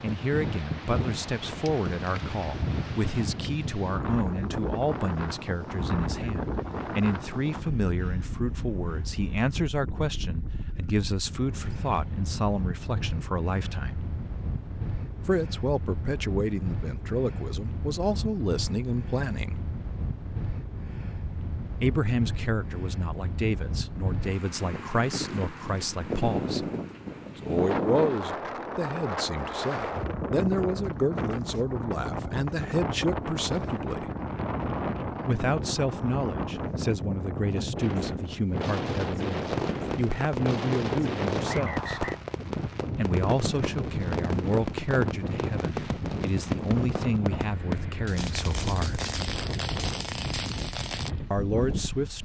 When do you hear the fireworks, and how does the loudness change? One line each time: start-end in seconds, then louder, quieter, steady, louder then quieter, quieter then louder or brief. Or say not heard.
39.5-51.1 steady.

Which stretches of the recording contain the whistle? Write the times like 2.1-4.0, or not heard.
41.5-42.2.